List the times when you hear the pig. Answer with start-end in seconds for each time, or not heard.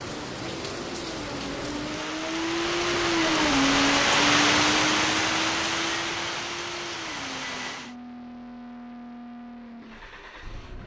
not heard.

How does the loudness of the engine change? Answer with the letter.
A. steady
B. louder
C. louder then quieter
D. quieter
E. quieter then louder
C.